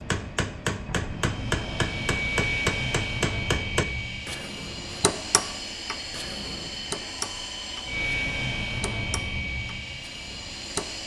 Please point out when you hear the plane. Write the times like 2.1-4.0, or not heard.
0.0-11.0.